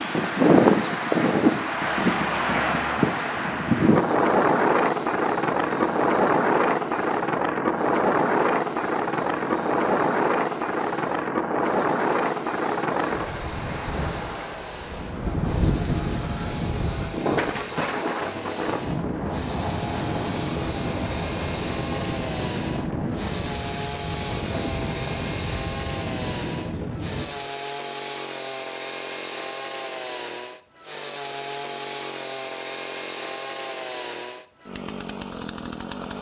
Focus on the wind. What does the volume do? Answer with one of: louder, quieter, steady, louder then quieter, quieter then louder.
quieter.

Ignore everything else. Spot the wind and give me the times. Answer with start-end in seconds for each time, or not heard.
0.0-27.3.